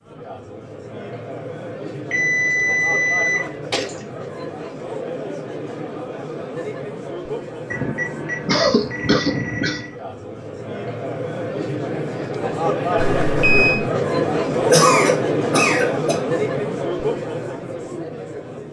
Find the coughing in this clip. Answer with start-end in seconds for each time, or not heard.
3.0-3.9, 8.4-9.8, 14.6-16.2.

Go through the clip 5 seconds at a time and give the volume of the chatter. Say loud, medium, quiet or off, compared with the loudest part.
medium, medium, loud, loud.